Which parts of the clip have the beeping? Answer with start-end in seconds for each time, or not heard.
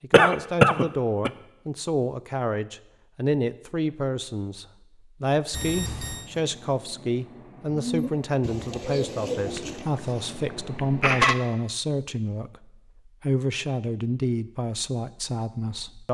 5.5-6.3.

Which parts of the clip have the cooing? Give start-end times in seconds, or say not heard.
7.7-9.9.